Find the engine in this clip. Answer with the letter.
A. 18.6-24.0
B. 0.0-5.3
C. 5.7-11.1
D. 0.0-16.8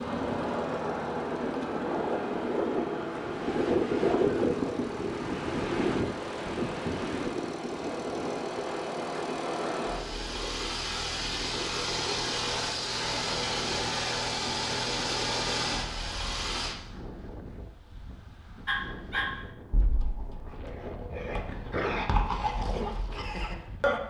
D.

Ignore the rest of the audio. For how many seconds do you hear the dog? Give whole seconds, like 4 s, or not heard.
5 s.